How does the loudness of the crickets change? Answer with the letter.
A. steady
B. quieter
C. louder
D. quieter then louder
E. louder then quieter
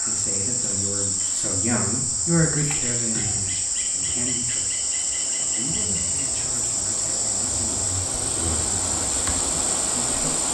A.